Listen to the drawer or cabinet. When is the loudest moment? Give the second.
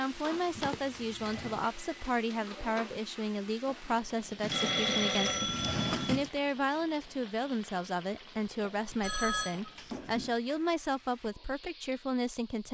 6 s.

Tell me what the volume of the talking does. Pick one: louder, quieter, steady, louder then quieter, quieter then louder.
steady.